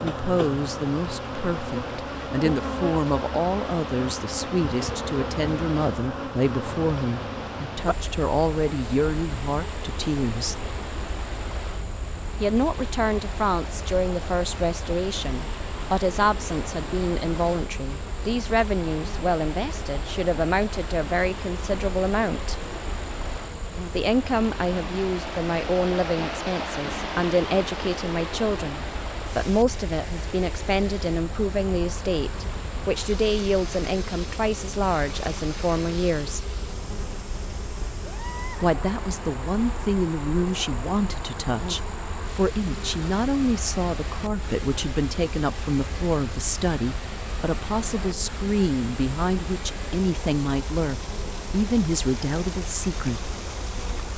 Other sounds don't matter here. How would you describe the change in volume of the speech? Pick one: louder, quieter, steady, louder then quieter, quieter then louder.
steady.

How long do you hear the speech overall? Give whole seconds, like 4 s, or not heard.
48 s.